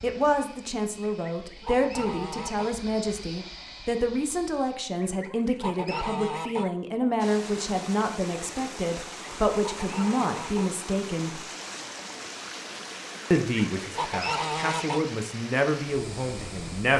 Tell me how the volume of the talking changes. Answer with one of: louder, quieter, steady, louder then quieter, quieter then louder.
steady.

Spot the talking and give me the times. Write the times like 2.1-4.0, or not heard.
0.0-11.4, 13.3-16.9.